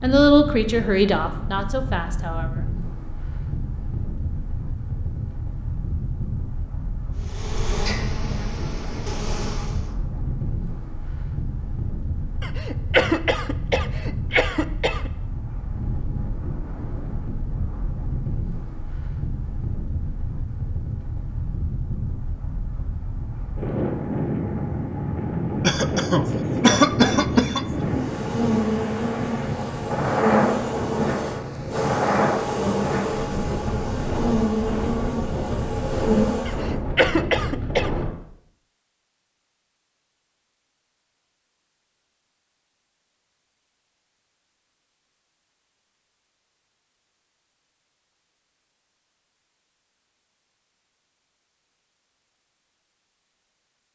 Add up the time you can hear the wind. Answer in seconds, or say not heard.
38 s.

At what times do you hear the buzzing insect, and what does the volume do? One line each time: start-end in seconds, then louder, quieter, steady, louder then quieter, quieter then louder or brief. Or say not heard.
7.2-9.8 brief
27.8-36.8 steady.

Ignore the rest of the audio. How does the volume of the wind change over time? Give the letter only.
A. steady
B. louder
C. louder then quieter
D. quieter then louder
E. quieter
B.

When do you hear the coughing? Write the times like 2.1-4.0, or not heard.
12.4-15.1, 25.6-27.9, 36.5-37.9.